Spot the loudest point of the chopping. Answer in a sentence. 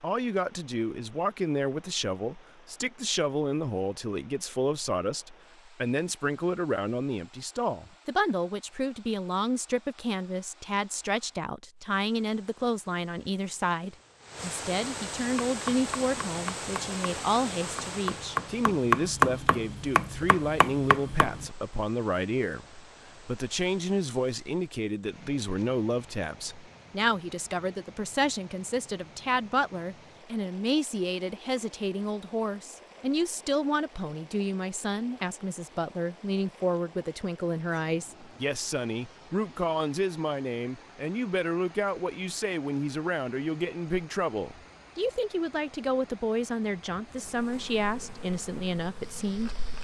The volume of the chopping peaks at 19 seconds.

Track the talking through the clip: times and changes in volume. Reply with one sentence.
The talking can be heard from 0.0 to 49.7 s, at a steady volume.